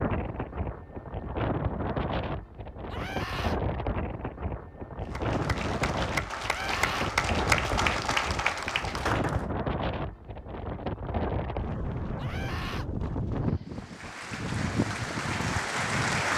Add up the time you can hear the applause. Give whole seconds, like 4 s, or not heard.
7 s.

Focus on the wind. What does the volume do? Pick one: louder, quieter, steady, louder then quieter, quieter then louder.
steady.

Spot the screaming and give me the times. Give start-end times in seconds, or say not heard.
2.9-3.6, 6.4-7.1, 12.2-12.8.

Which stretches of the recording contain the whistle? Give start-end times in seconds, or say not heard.
not heard.